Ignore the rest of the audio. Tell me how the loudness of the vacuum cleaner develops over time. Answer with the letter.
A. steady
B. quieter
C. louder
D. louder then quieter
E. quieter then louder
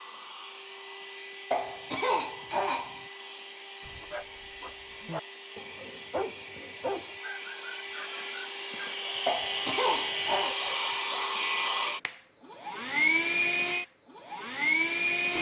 C.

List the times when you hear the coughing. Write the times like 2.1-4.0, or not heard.
1.5-3.0, 9.2-10.6.